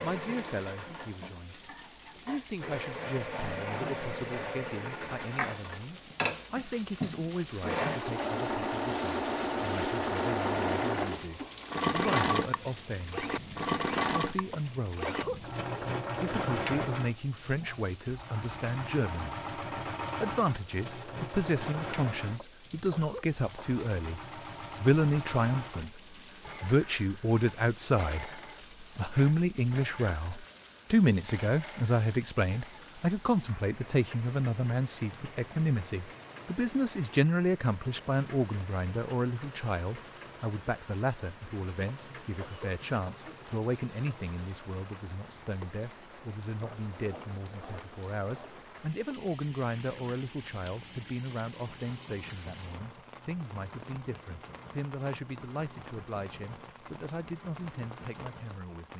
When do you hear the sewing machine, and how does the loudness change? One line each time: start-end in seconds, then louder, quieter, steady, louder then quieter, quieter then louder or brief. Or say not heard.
0.0-58.7 quieter.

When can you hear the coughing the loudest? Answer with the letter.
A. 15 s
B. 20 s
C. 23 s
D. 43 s
A.